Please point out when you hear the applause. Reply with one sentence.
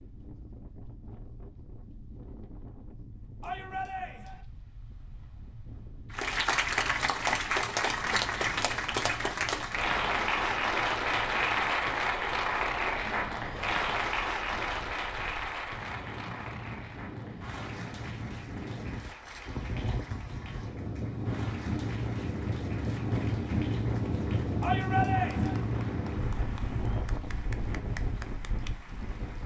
The applause can be heard from 6.1 to 29.4 s.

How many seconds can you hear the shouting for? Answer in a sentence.
The shouting can be heard for 2 seconds in total.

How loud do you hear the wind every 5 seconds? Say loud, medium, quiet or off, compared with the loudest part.
quiet, quiet, quiet, medium, loud, loud.